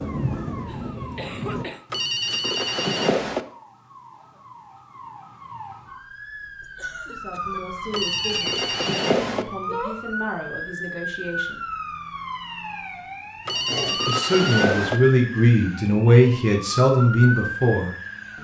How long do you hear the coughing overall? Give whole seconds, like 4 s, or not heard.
3 s.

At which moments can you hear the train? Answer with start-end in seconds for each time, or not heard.
0.0-1.6.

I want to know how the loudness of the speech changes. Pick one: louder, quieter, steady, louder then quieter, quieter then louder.
louder.